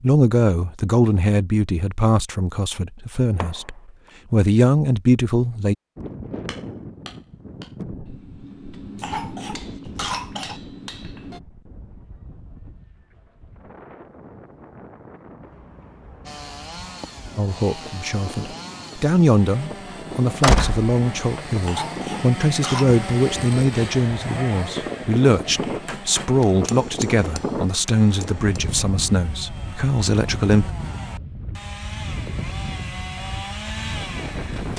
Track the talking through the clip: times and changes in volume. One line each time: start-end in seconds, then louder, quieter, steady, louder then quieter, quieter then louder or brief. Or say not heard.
0.0-5.8 quieter then louder
17.4-30.7 steady.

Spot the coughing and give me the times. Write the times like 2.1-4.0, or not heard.
8.9-10.6, 21.6-22.9.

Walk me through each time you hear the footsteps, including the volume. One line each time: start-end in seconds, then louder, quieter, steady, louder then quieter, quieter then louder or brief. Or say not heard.
not heard.